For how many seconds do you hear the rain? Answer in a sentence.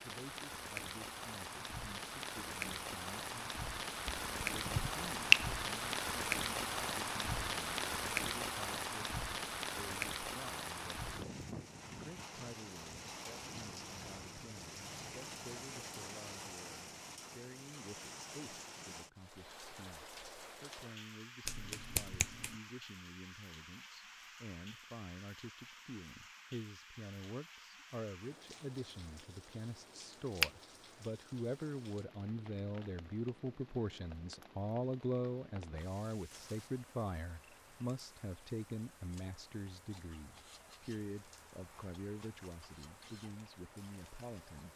You can hear the rain for 45 seconds altogether.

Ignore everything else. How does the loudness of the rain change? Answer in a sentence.
The loudness of the rain goes down.